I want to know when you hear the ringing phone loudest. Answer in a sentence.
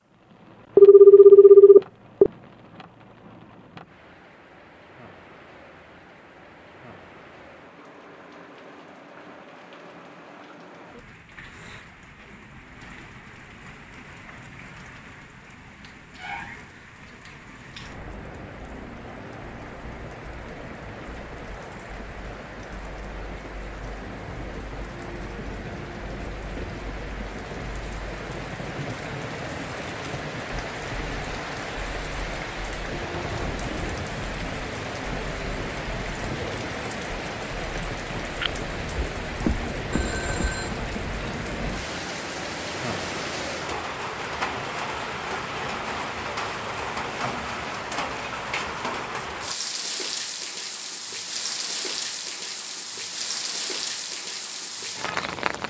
The loudest moment of the ringing phone is at 1 second.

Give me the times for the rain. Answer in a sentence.
The rain can be heard from 0.0 to 55.6 s.